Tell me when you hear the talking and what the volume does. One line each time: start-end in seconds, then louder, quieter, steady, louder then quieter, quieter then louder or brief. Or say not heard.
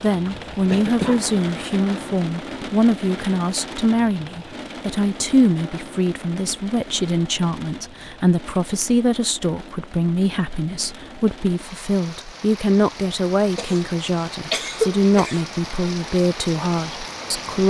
0.0-17.6 steady.